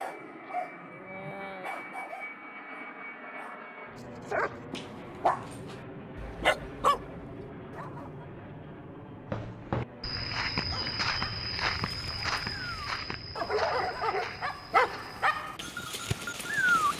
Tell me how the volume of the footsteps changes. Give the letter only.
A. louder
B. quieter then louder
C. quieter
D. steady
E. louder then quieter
C.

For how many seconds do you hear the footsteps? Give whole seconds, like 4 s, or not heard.
6 s.